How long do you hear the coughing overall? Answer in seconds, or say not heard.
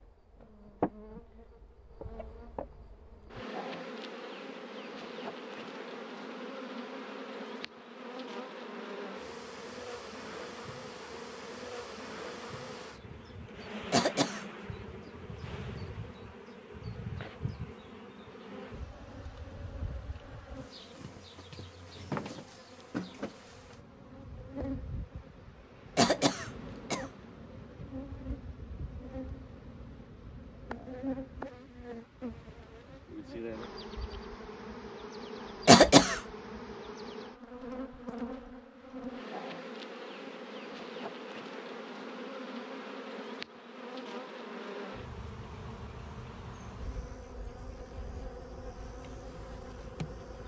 2 s.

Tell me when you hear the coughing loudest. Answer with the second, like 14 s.
36 s.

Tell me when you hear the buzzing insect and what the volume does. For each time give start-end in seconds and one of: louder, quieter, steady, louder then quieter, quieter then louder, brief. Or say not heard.
0.0-50.4 steady.